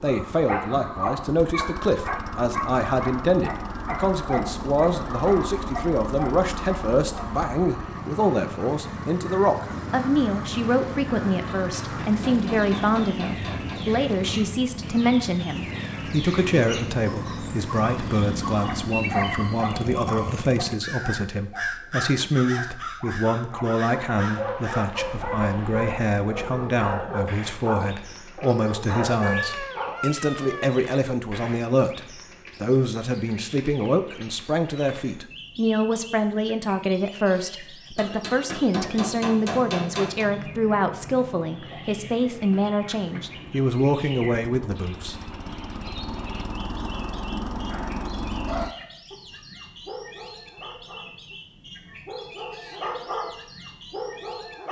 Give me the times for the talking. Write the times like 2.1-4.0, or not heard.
0.0-45.1.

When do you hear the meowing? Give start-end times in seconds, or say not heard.
13.5-14.7, 29.2-30.8.